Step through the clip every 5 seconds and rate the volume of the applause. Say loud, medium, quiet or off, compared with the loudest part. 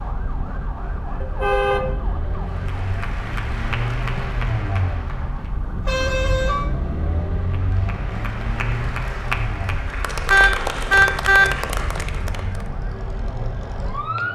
medium, medium, loud.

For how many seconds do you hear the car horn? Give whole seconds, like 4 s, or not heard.
3 s.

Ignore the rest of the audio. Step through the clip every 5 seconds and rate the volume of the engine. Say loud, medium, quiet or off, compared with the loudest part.
loud, loud, medium.